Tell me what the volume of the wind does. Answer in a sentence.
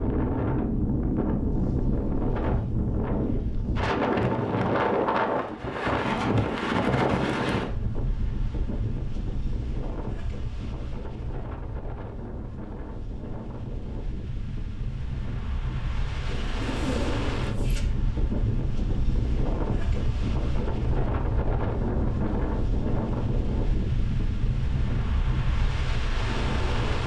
The volume of the wind goes down, then up.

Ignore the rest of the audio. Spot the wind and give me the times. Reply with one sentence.
You can hear the wind from 0.0 to 27.0 s.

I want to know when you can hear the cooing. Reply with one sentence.
You can hear the cooing from 16.2 to 17.8 s.